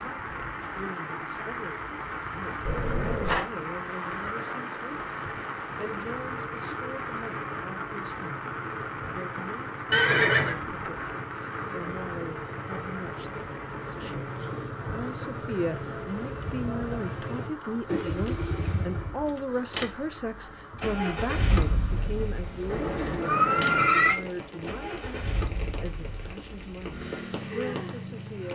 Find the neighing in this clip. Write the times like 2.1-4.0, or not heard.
2.6-3.5, 9.9-10.6, 22.6-24.2.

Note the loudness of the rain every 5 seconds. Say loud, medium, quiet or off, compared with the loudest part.
loud, loud, loud, medium, medium, medium.